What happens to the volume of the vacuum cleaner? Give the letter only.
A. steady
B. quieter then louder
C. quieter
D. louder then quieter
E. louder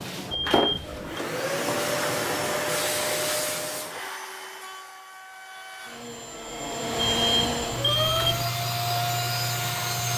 B.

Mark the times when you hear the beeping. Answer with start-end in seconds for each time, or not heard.
0.3-1.2, 7.0-8.4.